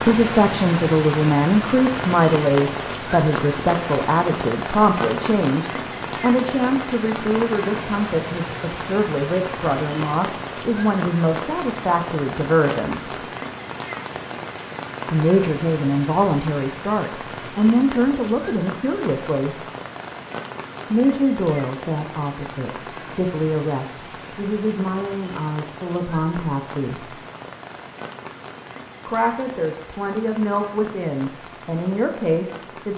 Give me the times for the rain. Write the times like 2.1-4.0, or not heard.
0.0-32.9.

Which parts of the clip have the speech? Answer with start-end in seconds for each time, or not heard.
0.1-13.2, 15.1-19.6, 20.9-27.1, 29.1-32.9.